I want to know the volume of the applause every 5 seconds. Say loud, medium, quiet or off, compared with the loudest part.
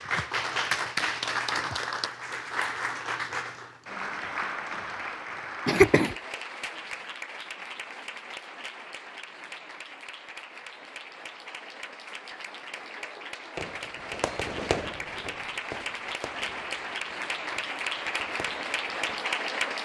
loud, medium, medium, loud.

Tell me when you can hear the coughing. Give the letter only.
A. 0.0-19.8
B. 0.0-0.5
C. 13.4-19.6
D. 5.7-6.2
D.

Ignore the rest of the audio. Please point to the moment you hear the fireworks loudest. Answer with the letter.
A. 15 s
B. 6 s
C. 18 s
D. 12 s
A.